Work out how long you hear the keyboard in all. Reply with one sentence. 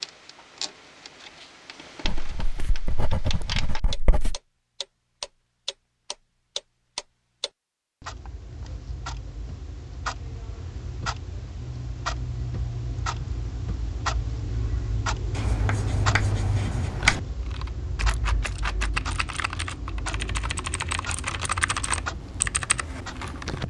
The keyboard can be heard for 6 seconds in total.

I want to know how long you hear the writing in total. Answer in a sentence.
You can hear the writing for 4 seconds altogether.